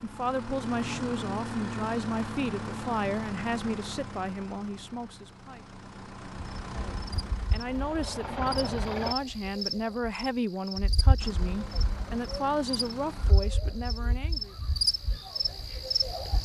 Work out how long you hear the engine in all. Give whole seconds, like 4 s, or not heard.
11 s.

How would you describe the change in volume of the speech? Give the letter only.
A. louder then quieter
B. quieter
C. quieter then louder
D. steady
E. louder
D.